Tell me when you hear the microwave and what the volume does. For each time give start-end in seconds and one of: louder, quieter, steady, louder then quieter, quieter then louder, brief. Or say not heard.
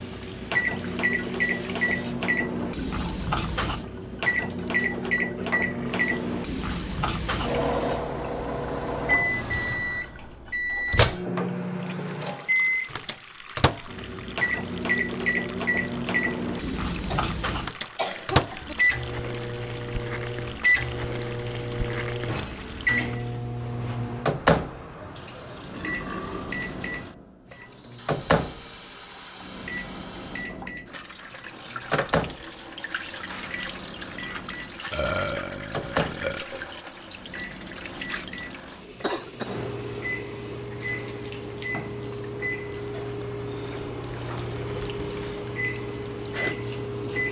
0.0-47.2 quieter.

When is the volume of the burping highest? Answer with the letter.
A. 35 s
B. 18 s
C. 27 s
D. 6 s
A.